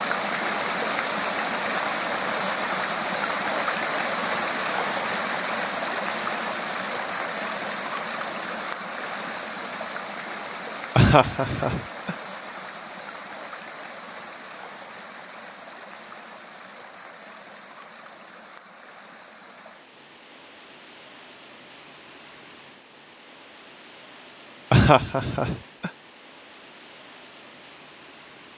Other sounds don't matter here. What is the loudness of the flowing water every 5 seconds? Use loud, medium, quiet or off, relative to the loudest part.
loud, loud, medium, quiet, quiet, quiet.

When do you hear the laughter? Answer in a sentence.
The laughter can be heard from 10.9 to 12.2 s and from 24.7 to 25.9 s.